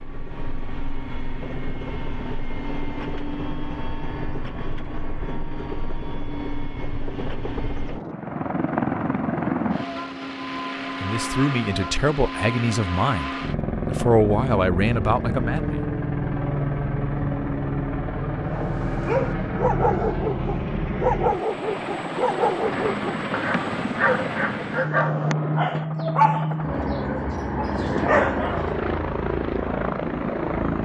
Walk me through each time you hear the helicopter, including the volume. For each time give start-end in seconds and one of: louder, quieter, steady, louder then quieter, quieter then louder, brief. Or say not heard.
0.0-30.8 louder.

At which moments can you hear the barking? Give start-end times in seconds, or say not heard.
18.4-28.9.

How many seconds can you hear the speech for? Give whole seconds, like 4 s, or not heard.
5 s.